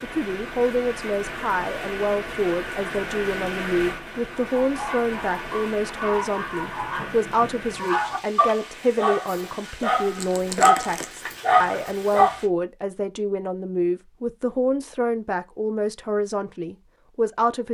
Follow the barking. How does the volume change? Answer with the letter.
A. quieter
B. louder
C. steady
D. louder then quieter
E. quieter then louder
B.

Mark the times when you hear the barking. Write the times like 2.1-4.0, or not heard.
4.5-12.3.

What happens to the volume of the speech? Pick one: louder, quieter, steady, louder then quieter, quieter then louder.
steady.